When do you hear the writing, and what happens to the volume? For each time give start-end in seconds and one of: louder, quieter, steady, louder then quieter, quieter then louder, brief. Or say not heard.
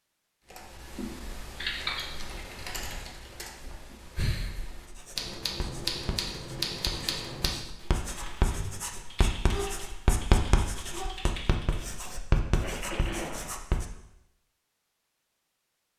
4.8-13.8 louder.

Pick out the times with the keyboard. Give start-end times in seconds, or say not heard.
0.5-11.8.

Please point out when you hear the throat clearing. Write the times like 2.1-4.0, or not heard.
12.6-13.6.